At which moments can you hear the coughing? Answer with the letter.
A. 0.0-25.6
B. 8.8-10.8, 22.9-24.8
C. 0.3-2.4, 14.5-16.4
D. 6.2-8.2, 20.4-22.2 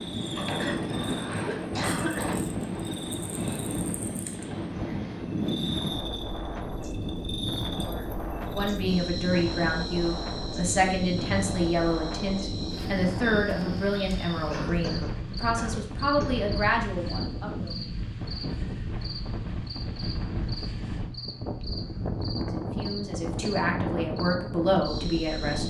C.